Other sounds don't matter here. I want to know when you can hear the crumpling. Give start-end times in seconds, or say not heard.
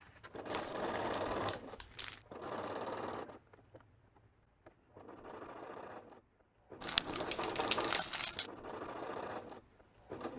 0.5-2.1, 6.8-8.5.